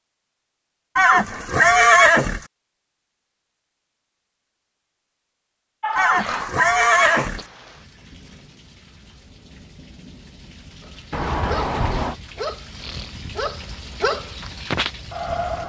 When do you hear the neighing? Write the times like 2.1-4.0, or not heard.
0.9-2.5, 6.0-7.5, 11.1-12.2.